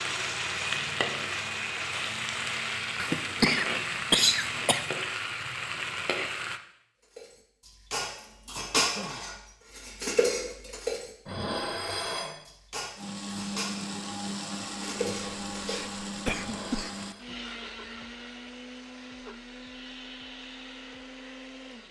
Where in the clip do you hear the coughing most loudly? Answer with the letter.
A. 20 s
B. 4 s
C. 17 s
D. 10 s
B.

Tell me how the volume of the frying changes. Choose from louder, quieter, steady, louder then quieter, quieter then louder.
steady.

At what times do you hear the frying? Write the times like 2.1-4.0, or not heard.
0.0-6.6.